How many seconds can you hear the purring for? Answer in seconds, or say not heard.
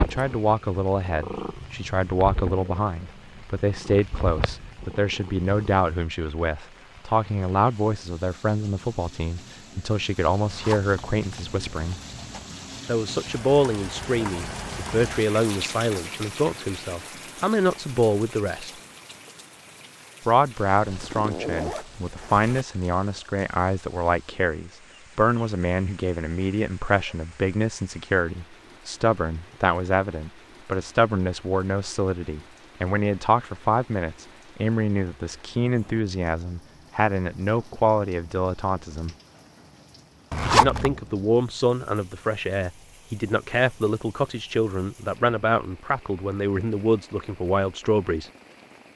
6 s.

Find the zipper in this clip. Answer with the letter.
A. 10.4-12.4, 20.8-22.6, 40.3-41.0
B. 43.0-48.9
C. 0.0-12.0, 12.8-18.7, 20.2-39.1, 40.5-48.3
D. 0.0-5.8
A.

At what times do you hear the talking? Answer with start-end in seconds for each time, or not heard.
0.0-12.0, 12.8-18.7, 20.2-39.1, 40.5-48.3.